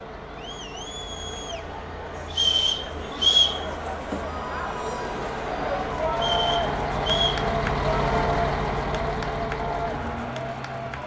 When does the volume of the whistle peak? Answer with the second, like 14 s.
3 s.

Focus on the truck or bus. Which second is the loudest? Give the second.
8 s.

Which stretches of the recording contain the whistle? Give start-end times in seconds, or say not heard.
2.3-3.6, 6.2-7.4.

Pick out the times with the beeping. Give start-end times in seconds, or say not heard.
not heard.